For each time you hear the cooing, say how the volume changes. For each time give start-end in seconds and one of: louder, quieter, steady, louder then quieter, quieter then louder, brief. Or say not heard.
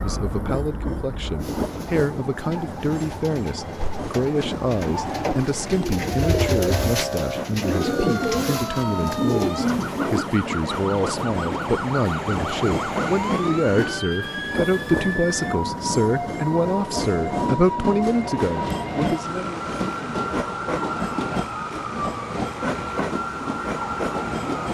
1.4-10.3 louder.